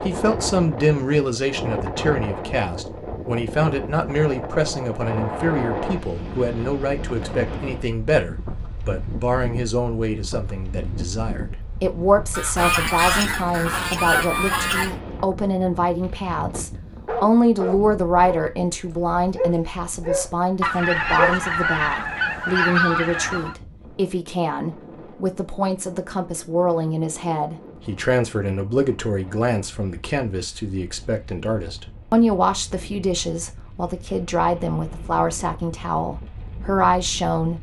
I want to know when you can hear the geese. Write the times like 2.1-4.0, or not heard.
12.3-14.9, 20.6-23.6.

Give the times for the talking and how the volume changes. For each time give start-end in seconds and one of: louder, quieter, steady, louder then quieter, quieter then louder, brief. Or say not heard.
0.0-37.5 steady.